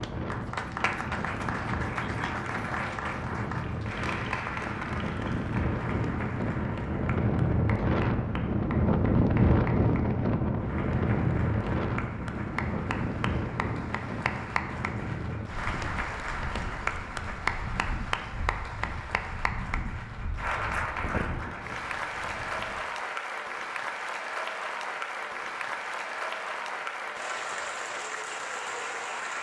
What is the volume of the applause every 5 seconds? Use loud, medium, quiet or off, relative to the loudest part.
loud, medium, medium, loud, loud, loud.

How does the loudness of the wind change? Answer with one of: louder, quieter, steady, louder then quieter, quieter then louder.
louder then quieter.